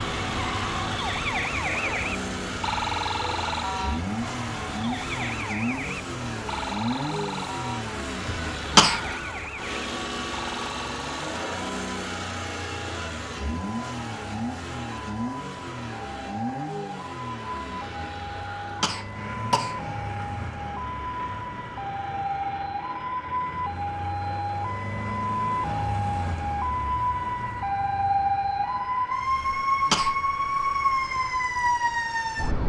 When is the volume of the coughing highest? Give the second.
9 s.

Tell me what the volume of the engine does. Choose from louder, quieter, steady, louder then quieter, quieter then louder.
quieter.